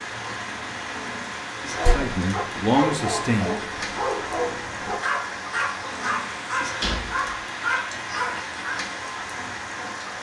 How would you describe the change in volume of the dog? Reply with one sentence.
The volume of the dog stays about the same.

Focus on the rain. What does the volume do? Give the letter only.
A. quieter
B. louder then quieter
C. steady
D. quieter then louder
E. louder
C.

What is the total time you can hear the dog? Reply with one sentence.
You can hear the dog for 7 seconds altogether.